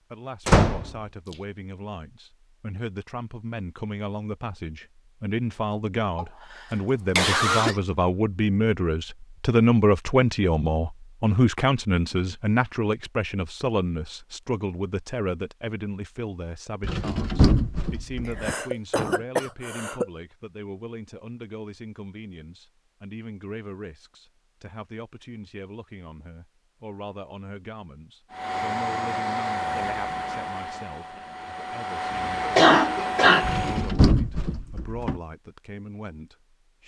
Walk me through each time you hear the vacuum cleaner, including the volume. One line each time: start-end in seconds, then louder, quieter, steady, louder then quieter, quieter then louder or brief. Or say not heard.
28.3-33.9 quieter then louder.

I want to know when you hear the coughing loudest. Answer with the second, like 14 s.
33 s.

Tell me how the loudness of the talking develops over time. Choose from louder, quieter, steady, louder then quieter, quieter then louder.
louder then quieter.